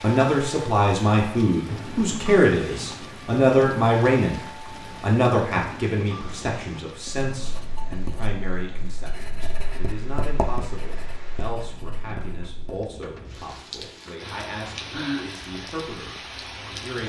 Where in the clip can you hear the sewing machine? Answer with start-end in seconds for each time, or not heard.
not heard.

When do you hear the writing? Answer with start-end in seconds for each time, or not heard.
7.0-12.8.